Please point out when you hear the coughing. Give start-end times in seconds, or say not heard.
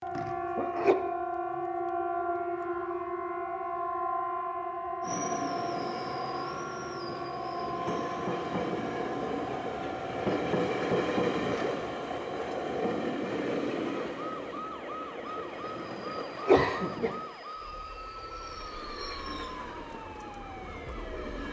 0.1-0.9, 16.2-17.1.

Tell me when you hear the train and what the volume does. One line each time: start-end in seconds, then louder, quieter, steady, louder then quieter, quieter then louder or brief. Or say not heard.
5.0-21.4 louder then quieter.